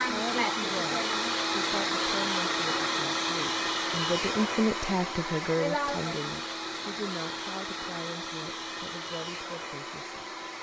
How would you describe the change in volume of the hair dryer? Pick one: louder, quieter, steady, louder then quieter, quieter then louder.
quieter.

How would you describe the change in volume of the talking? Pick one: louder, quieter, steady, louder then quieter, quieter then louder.
louder then quieter.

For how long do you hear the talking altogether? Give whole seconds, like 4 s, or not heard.
10 s.